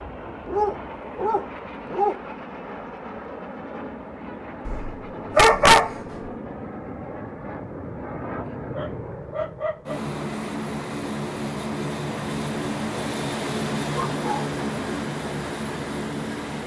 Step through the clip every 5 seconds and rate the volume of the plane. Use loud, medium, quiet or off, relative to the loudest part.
medium, medium, loud, loud.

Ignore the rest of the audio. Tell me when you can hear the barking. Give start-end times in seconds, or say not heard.
0.4-2.2, 4.7-6.0, 8.4-10.0, 13.9-14.5.